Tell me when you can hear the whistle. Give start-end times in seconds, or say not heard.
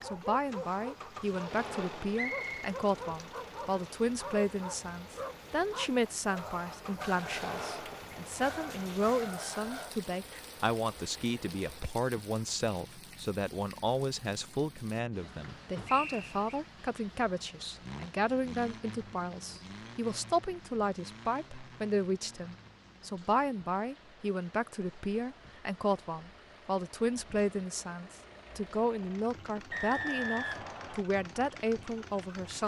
2.1-2.6, 15.8-16.6, 29.7-31.1.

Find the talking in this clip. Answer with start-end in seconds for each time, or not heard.
0.0-32.6.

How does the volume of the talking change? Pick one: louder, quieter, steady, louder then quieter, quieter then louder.
steady.